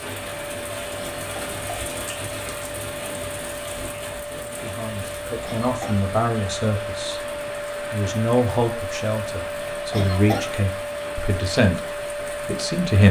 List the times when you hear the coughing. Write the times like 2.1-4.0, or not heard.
0.9-2.3, 5.4-6.0, 9.9-10.5.